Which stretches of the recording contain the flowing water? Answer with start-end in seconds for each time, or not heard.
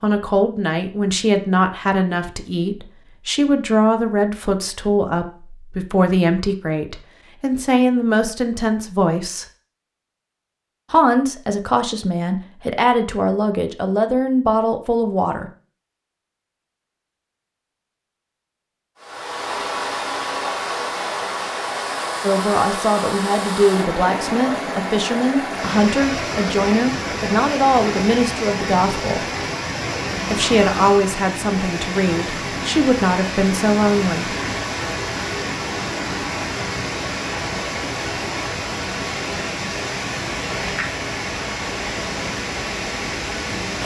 18.9-43.8.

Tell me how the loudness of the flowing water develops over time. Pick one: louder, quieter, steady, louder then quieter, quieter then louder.
steady.